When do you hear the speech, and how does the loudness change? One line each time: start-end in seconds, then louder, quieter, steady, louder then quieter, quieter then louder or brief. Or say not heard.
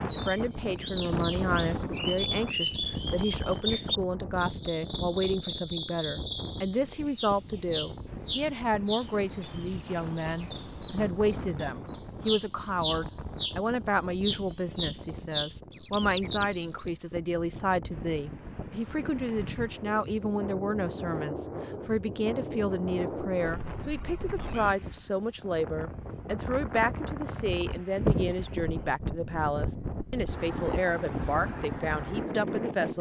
0.0-32.9 steady.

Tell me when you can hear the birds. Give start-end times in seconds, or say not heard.
0.0-16.9.